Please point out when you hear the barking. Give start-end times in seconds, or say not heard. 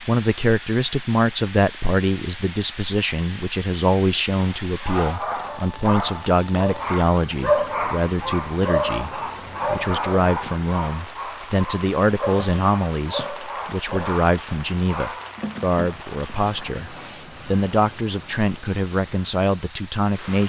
4.3-16.4.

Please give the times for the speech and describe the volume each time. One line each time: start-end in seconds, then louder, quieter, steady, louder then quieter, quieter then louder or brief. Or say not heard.
0.0-20.4 steady.